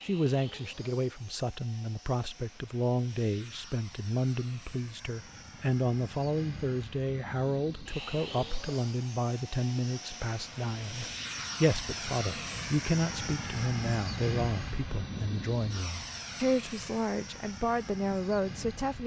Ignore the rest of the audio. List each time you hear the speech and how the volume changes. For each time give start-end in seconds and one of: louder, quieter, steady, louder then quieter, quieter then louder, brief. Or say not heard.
0.0-19.0 steady.